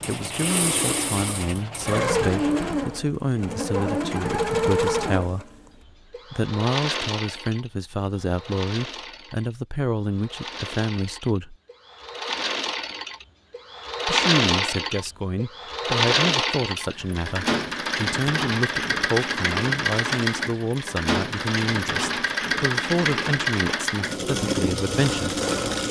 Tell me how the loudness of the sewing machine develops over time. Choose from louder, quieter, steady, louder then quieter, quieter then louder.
quieter then louder.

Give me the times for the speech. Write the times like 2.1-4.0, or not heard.
0.1-5.6, 6.3-11.6, 14.1-25.4.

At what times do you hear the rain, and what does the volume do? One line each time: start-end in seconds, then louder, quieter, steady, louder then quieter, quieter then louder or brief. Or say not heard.
not heard.